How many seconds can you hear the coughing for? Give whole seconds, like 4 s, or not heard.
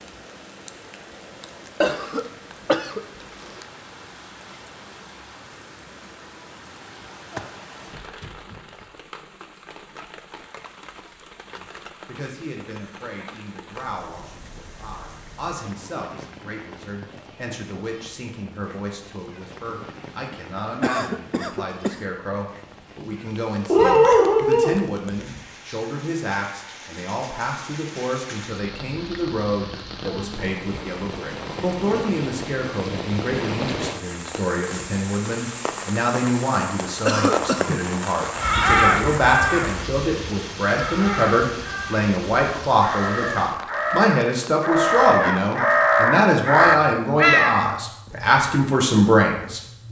4 s.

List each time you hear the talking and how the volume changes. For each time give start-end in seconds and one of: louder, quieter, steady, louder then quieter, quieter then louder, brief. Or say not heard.
11.4-49.6 louder.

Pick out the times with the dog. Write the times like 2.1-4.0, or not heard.
23.7-24.8.